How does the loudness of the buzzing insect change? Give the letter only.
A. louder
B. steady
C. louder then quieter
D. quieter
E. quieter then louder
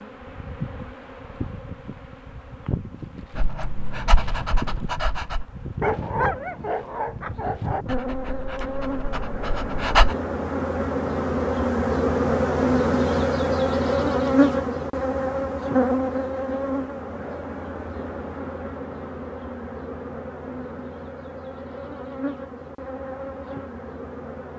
C.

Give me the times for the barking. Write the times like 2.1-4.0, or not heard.
3.4-10.2.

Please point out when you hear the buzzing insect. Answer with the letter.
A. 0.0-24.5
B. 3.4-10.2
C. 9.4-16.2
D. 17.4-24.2
A.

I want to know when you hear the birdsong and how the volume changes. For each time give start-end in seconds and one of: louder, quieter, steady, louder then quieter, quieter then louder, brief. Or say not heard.
not heard.